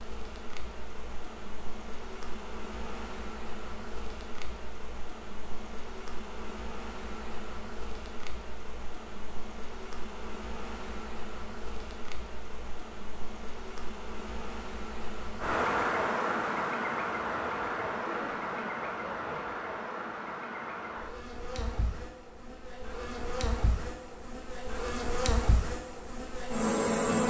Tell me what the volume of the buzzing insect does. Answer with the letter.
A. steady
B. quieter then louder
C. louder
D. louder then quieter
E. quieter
C.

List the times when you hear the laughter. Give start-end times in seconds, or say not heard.
17.9-19.6.